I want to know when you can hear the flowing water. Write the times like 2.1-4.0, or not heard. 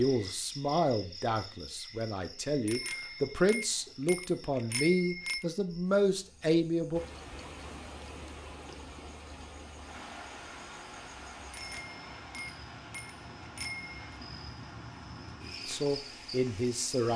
6.9-16.9.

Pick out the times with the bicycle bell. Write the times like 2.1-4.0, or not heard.
2.6-5.5, 11.5-14.2.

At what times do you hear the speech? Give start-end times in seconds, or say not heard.
0.0-7.0, 15.7-17.1.